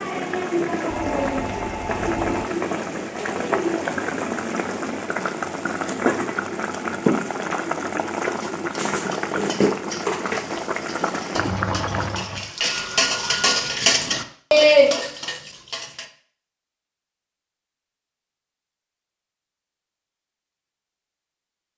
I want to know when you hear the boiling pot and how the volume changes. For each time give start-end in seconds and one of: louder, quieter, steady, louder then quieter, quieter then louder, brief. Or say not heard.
0.0-12.5 steady.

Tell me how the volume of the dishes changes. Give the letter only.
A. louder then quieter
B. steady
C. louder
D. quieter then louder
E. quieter
C.